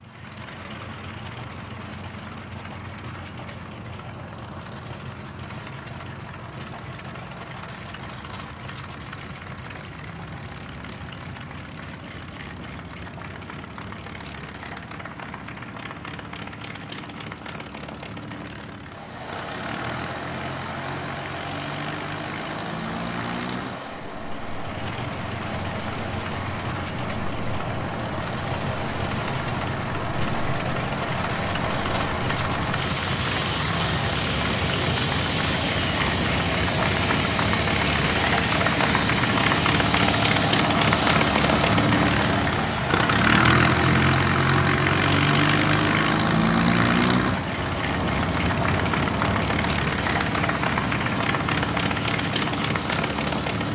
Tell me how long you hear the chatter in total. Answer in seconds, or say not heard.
not heard.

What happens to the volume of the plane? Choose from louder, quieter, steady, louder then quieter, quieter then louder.
louder.